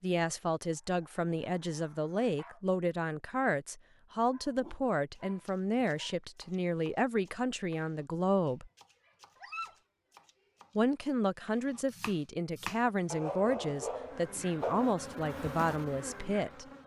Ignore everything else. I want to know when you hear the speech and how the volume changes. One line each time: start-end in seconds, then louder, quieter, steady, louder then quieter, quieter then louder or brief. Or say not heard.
0.0-8.7 steady
10.8-16.6 steady.